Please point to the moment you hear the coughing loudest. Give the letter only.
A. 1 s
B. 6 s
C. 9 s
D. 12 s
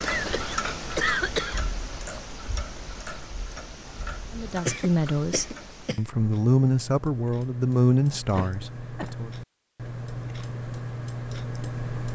A.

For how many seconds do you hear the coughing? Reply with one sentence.
You can hear the coughing for 4 seconds altogether.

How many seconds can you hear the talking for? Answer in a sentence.
You can hear the talking for 5 seconds altogether.